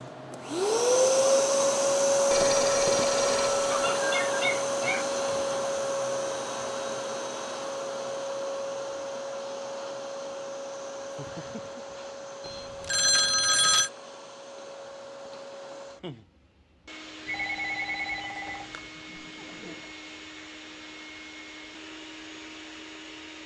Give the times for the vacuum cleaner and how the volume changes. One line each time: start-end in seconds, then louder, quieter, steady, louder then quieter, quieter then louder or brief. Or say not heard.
0.0-23.4 quieter.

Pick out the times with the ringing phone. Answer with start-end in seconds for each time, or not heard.
2.3-3.6, 12.4-13.9, 17.2-18.9.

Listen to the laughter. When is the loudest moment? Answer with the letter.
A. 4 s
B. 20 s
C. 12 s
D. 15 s
A.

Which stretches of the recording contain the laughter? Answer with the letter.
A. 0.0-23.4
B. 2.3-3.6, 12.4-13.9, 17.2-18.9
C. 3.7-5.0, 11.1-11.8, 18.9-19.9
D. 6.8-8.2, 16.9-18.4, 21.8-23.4
C.